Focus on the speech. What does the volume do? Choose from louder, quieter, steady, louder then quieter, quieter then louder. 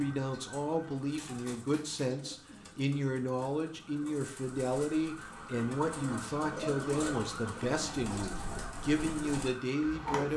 steady.